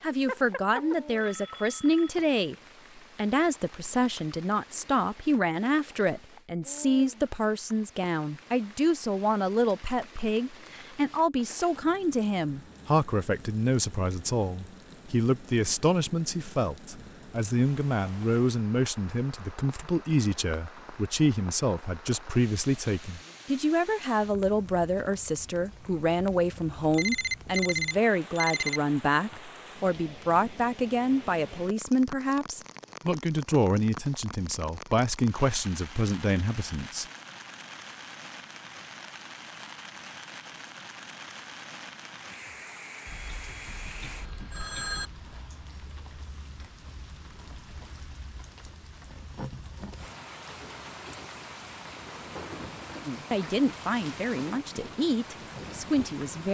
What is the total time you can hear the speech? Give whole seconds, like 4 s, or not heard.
40 s.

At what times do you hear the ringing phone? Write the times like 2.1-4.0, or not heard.
0.2-2.1, 26.9-28.8, 43.0-45.1.